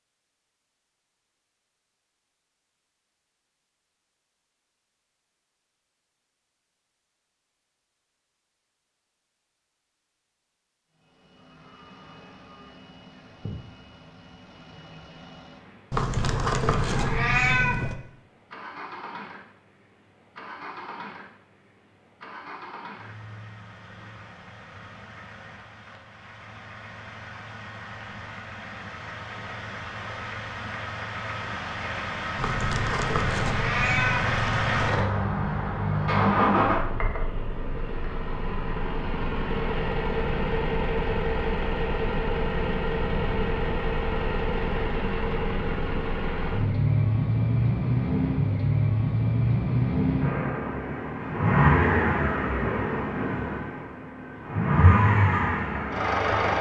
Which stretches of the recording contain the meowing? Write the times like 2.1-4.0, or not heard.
15.9-17.9, 32.4-35.0.